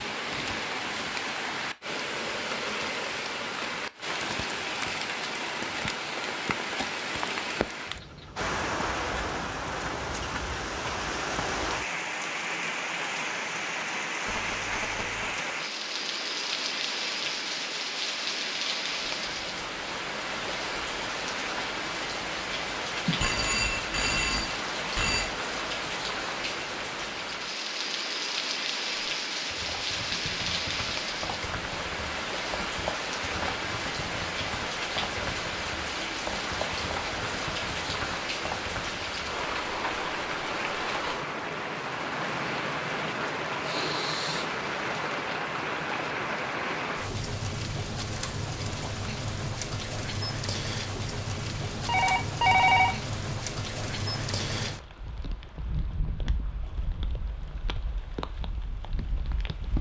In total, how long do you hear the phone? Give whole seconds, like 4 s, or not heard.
4 s.